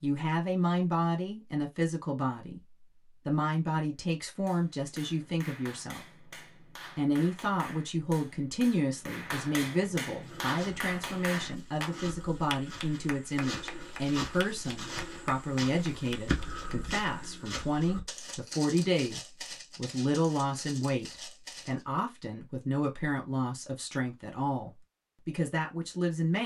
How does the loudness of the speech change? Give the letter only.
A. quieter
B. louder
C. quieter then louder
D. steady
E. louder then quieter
D.